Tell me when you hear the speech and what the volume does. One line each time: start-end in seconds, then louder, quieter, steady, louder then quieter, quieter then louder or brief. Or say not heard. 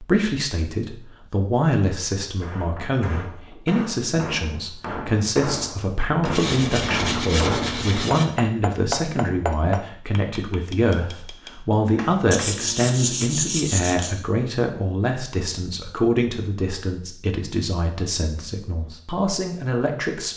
0.0-20.3 steady.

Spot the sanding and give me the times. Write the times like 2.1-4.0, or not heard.
6.2-8.2, 12.3-14.2.